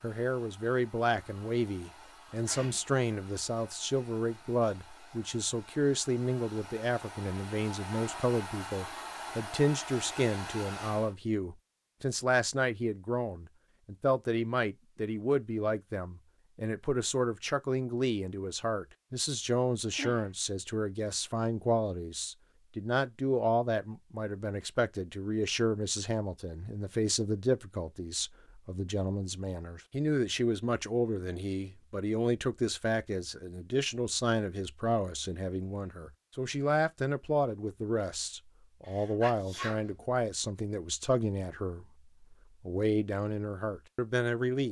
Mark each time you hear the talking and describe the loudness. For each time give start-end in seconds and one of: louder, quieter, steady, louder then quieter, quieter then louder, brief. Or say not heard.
0.0-44.6 steady.